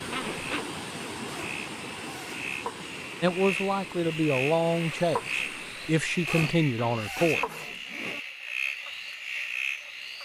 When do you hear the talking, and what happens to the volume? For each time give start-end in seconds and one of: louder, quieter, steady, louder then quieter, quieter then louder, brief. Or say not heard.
3.2-7.5 steady.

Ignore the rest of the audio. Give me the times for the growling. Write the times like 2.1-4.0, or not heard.
0.1-0.7, 6.8-7.8.